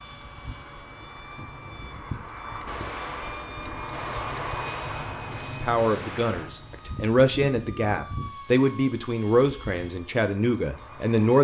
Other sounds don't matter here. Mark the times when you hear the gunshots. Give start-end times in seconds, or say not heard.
2.6-6.5.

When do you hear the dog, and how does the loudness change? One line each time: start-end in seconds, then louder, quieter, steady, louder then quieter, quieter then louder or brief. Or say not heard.
not heard.